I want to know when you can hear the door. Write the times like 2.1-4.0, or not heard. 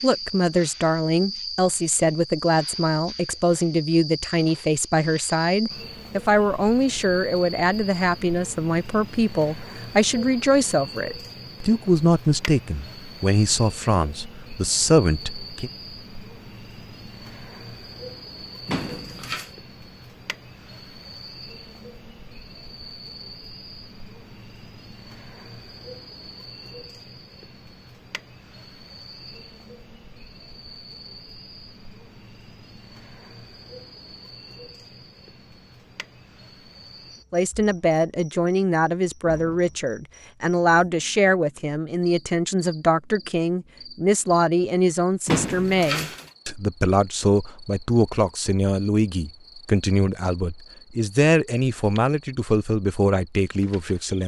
18.6-19.5, 45.2-46.2.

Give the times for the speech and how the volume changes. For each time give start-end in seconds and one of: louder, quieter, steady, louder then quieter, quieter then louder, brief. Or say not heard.
0.0-15.7 steady
37.3-54.2 steady.